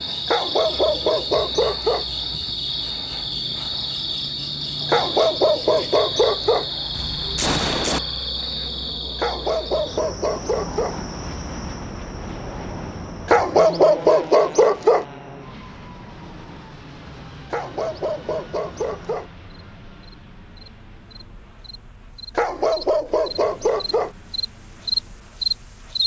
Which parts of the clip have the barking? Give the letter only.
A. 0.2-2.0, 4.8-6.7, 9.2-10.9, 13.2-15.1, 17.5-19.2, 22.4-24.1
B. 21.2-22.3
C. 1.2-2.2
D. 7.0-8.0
A.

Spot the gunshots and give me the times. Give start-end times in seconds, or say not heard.
7.0-8.0.